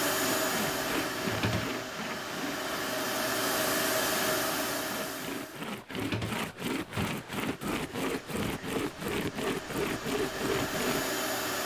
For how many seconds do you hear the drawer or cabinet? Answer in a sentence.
The drawer or cabinet can be heard for 2 seconds in total.